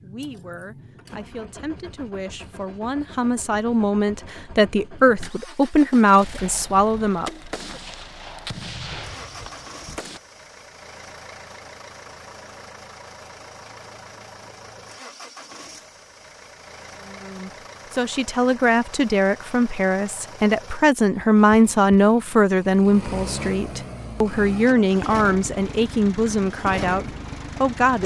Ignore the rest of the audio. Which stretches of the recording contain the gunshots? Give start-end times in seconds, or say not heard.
6.2-10.2.